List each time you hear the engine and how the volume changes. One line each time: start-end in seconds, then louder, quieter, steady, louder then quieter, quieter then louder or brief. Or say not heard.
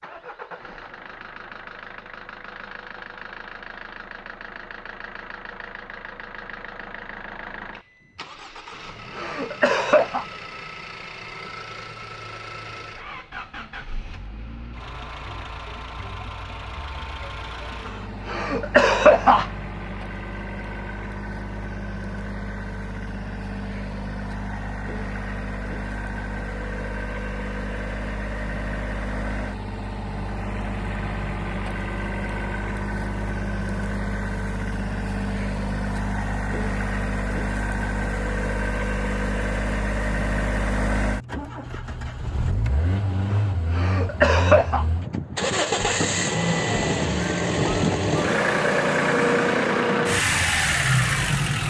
0.0-51.6 louder.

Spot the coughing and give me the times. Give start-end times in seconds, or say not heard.
8.7-10.2, 17.9-19.4, 43.3-44.9.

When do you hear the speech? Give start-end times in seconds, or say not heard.
not heard.